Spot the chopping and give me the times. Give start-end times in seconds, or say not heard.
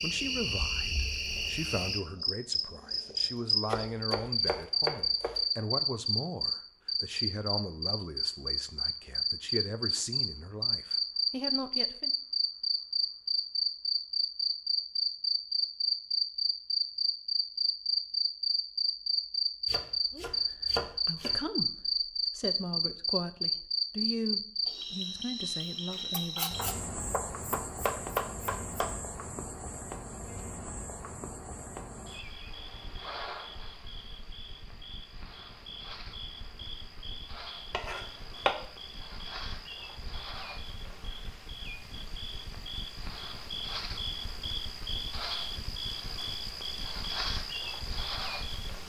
3.6-5.5, 19.6-21.4, 26.1-28.9, 37.7-38.5.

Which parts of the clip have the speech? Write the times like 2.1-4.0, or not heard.
0.0-12.1, 20.1-26.6.